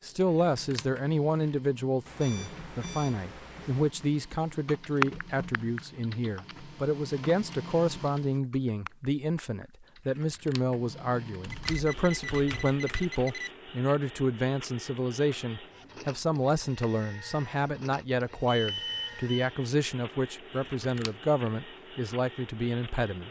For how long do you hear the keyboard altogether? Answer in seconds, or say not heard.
6 s.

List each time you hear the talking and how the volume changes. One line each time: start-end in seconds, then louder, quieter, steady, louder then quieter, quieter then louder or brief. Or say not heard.
0.0-23.2 steady.